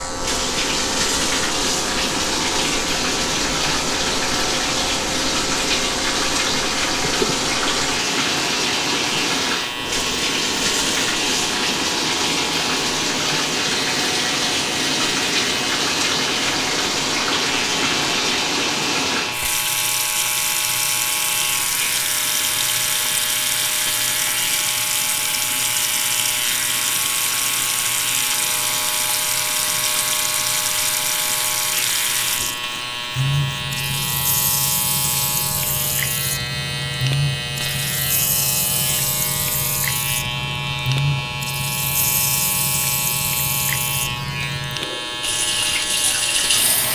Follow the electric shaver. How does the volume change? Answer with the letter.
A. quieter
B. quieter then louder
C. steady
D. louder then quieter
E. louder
C.